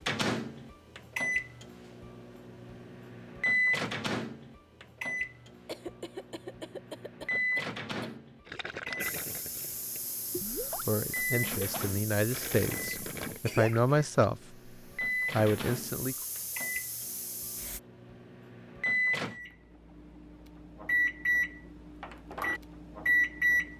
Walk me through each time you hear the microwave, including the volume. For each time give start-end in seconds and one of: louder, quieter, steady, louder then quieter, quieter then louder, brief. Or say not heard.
0.1-23.7 quieter then louder.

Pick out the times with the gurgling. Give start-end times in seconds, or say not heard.
8.4-14.2.